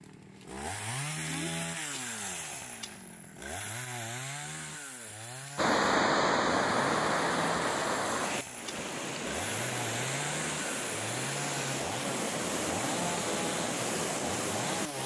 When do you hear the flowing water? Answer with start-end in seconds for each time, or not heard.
5.5-15.0.